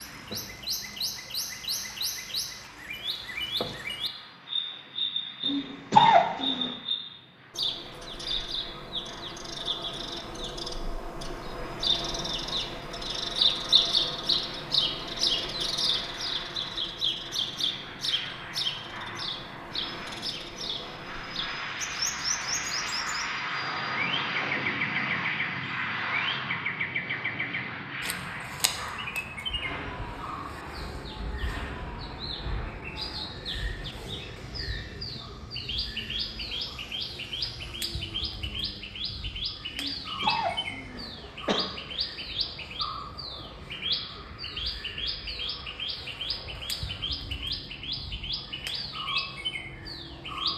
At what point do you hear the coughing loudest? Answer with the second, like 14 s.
6 s.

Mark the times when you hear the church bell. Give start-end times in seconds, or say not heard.
not heard.